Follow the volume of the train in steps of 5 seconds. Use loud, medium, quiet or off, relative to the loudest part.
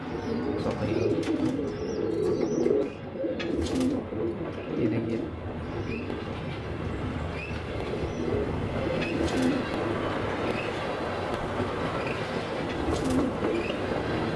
medium, loud, loud.